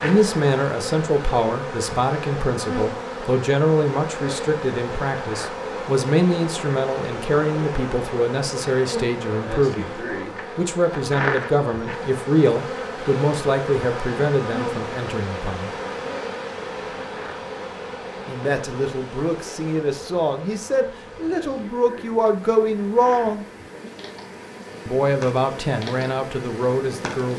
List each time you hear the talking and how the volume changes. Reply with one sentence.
The talking can be heard from 0.0 to 15.7 s, at a steady volume; from 18.2 to 23.4 s, getting louder; and briefly from 24.9 to 27.3 s.